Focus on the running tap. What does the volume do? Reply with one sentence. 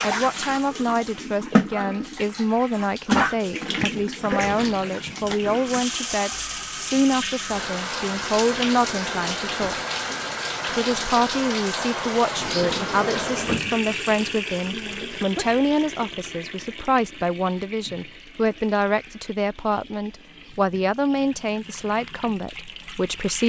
The volume of the running tap goes down.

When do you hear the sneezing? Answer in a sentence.
You can hear the sneezing from 3.8 to 5.0 s and from 15.2 to 15.6 s.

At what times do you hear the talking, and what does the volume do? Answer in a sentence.
You can hear the talking from 0.0 to 9.8 s, at a steady volume; and from 10.7 to 23.4 s, at a steady volume.